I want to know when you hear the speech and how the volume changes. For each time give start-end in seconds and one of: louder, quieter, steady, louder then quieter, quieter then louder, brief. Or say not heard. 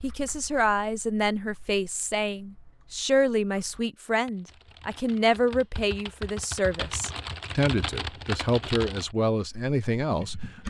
0.0-10.3 steady.